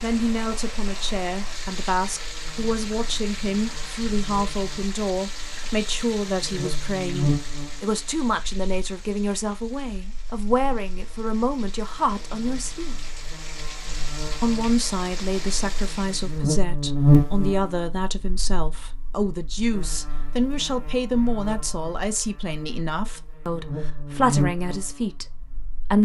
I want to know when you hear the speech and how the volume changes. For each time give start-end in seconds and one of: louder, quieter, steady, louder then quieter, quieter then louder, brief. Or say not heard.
0.0-12.9 steady
14.3-25.9 steady.